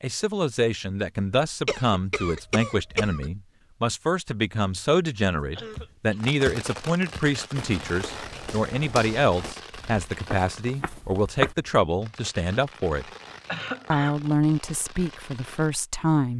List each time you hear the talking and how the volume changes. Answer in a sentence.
The talking can be heard from 0.0 to 13.1 s, at a steady volume; and briefly from 13.9 to 16.3 s.